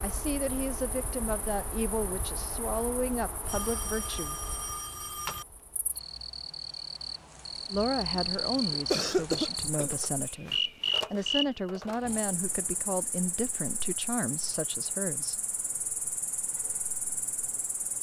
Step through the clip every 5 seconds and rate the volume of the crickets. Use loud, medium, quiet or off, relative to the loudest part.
medium, loud, loud, medium.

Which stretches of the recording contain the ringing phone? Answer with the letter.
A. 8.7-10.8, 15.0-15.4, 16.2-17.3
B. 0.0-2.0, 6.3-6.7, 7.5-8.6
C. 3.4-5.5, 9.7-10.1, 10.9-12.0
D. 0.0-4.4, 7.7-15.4
C.